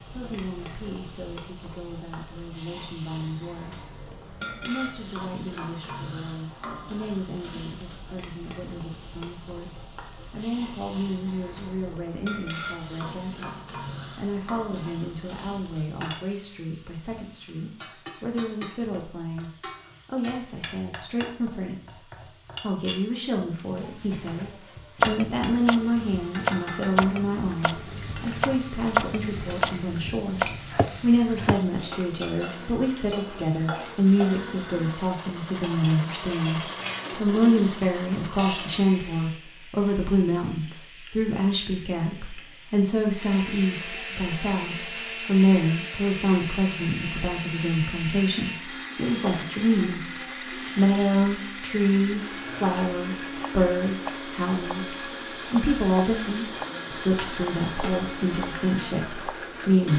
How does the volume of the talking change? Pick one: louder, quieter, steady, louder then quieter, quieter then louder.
louder.